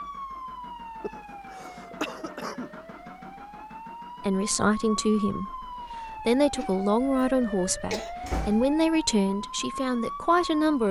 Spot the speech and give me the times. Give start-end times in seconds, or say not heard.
4.2-10.8.